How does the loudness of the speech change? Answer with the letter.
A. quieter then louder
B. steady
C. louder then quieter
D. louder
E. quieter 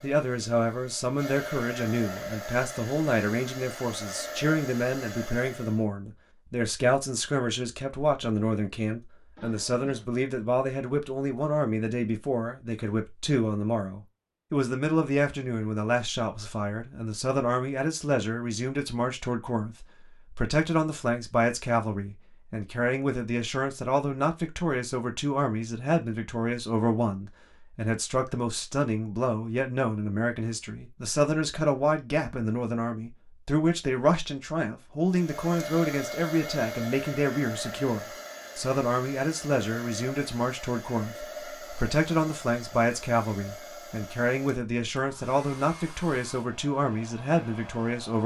B.